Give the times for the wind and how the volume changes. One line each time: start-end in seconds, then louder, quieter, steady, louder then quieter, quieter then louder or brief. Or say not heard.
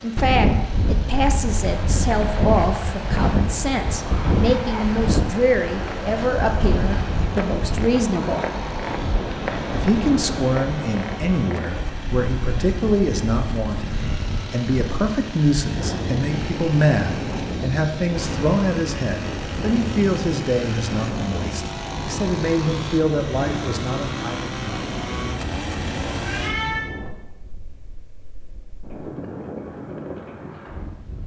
0.1-31.2 quieter.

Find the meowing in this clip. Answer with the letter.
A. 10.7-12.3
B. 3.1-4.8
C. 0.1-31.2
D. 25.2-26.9
D.